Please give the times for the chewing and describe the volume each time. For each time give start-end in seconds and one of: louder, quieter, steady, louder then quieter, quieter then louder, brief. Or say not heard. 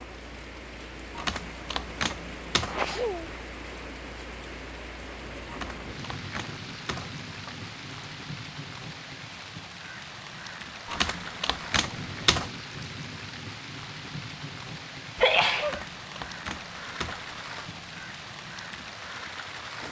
not heard.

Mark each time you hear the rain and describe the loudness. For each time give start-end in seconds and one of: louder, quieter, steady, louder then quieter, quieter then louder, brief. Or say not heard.
0.0-19.8 steady.